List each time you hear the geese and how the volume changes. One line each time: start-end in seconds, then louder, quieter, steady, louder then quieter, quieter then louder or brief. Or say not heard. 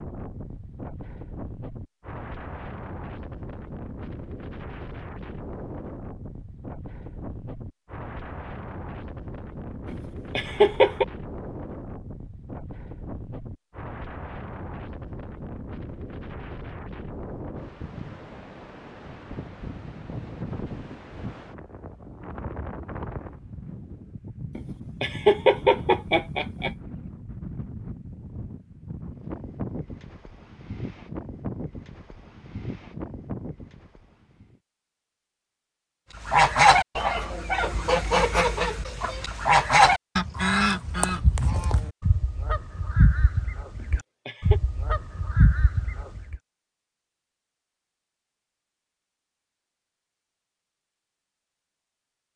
36.1-46.4 quieter.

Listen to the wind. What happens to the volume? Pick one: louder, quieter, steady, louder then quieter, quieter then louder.
steady.